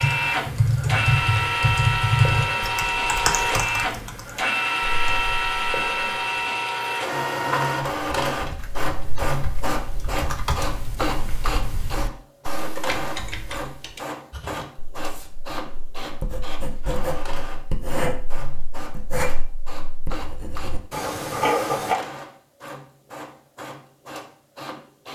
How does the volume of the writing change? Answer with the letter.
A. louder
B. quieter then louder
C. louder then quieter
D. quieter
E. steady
A.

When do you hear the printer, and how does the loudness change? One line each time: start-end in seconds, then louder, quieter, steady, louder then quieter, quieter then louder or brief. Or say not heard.
0.0-25.1 quieter.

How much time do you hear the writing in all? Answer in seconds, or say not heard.
8 s.